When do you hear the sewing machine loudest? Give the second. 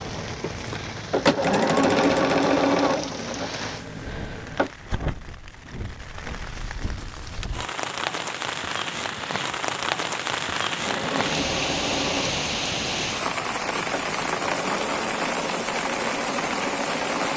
2 s.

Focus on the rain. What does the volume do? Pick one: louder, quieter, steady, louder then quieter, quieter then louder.
louder.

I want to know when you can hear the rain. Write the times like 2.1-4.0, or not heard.
0.0-17.3.